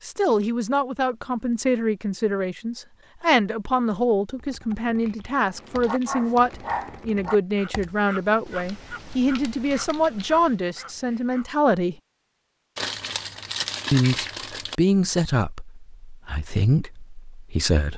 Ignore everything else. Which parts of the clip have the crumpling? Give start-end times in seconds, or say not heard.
5.0-6.8, 12.8-14.8.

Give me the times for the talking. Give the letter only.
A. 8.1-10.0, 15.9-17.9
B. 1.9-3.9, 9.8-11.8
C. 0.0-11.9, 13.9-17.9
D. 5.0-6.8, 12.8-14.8
C.